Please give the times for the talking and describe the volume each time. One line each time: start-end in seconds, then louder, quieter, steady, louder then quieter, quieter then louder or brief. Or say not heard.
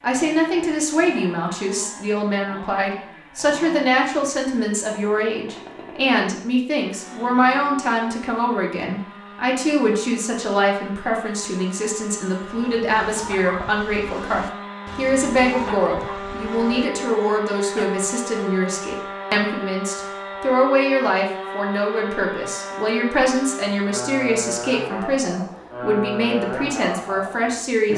0.0-27.9 steady.